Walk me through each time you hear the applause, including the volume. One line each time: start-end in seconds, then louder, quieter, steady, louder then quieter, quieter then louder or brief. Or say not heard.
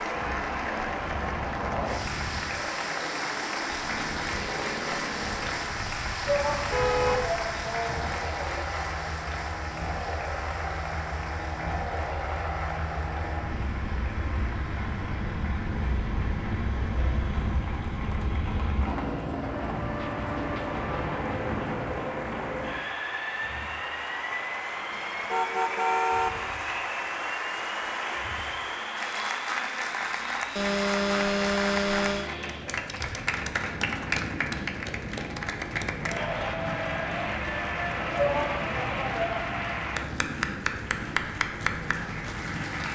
0.0-42.9 quieter then louder.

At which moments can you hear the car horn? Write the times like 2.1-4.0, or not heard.
6.7-8.3, 24.9-26.3, 30.6-32.2.